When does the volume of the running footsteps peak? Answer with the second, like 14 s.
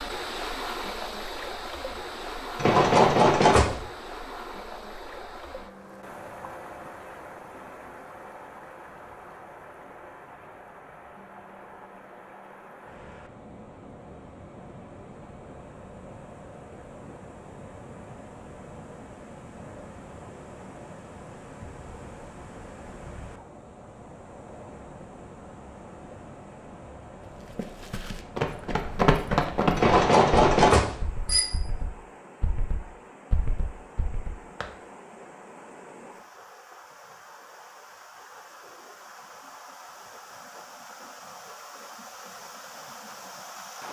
29 s.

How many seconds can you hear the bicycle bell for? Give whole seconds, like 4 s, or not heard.
3 s.